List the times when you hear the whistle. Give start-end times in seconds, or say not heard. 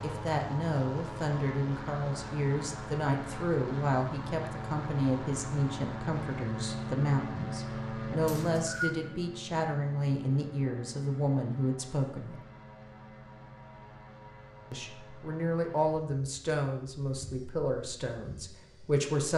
8.2-8.9.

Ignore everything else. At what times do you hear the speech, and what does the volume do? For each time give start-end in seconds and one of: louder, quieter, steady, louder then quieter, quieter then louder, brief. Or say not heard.
0.0-12.3 steady
14.7-19.3 quieter.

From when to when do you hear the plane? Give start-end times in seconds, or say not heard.
0.0-19.1.